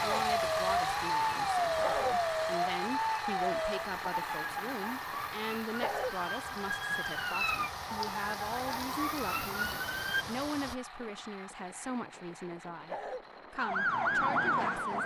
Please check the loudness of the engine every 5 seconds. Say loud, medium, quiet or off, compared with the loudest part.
loud, medium, quiet.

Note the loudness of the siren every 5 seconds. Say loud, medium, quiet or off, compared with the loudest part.
loud, medium, loud.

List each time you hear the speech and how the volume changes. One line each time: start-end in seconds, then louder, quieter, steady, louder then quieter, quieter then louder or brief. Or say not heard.
0.0-15.0 steady.